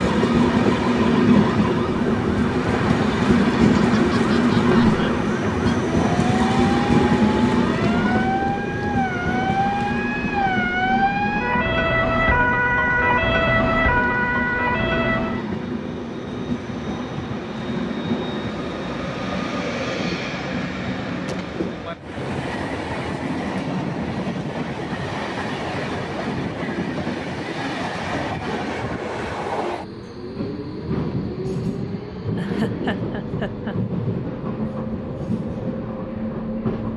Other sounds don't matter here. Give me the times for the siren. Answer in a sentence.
You can hear the siren from 0.0 to 15.4 s.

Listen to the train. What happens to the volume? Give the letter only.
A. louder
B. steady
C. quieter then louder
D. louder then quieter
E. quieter
E.